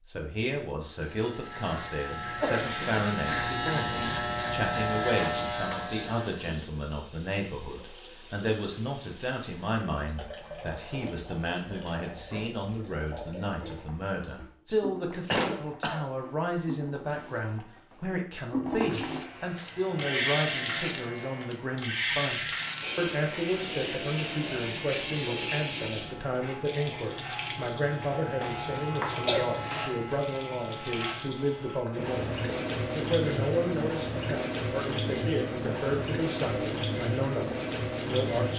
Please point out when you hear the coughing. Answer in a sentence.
You can hear the coughing from 2.4 to 3.0 s, from 15.3 to 16.1 s and from 29.1 to 30.0 s.